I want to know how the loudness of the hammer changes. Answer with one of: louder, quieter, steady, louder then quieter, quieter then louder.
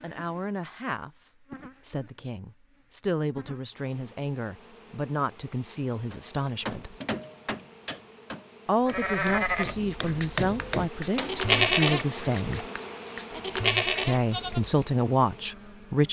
quieter then louder.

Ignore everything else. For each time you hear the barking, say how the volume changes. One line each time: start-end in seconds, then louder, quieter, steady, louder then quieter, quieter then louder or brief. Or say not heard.
not heard.